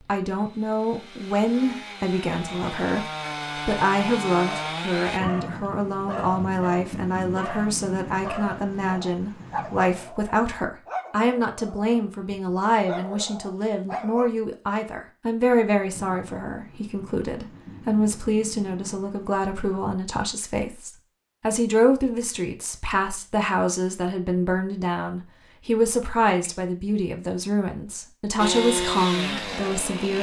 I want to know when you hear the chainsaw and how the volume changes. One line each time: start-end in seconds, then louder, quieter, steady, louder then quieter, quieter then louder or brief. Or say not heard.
0.0-5.2 louder
28.4-30.1 brief.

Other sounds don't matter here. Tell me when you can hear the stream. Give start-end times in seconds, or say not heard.
not heard.